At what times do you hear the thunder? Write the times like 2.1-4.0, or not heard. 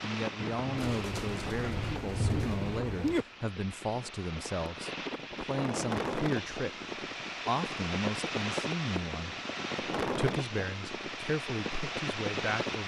0.3-3.2.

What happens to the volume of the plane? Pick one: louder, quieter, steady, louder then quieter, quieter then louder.
louder.